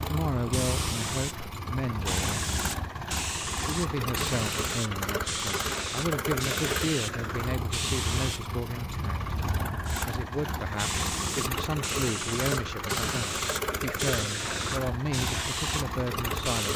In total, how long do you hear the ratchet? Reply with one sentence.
The ratchet can't be heard in this clip.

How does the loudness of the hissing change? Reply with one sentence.
The volume of the hissing stays about the same.